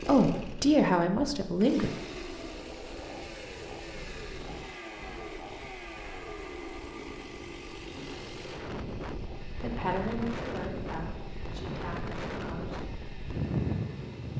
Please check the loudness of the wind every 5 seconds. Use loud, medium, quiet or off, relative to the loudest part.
quiet, medium, loud.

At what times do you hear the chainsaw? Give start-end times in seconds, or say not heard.
0.0-14.3.